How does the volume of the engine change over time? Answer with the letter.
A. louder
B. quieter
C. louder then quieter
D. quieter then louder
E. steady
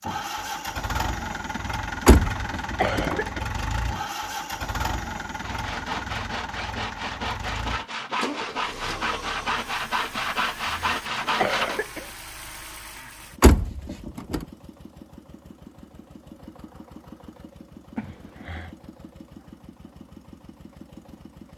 B.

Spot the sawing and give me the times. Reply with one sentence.
The sawing can be heard from 5.4 to 11.8 s.